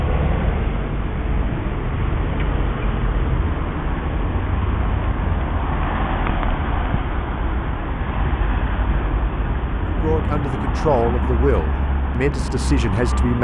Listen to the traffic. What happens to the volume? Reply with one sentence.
The loudness of the traffic stays about the same.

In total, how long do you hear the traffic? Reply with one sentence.
You can hear the traffic for 13 seconds altogether.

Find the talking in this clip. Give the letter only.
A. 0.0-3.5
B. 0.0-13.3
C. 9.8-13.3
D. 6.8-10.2
C.